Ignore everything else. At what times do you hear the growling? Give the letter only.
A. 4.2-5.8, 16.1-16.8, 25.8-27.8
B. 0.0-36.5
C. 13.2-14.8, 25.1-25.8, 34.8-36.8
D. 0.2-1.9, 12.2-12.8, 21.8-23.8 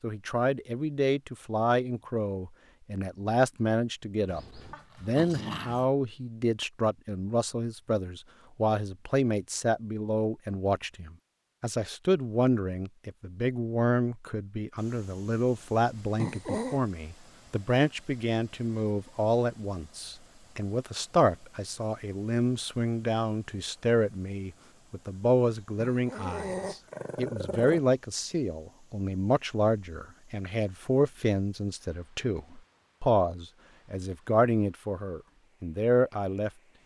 A.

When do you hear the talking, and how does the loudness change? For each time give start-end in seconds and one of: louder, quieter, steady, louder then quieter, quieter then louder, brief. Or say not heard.
0.0-36.5 steady.